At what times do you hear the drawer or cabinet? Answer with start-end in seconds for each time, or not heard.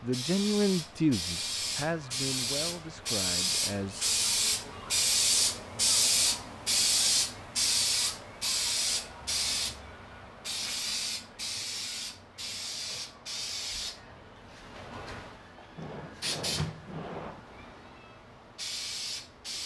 15.8-17.4.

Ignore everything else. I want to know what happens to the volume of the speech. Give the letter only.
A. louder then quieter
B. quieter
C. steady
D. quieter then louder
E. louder
B.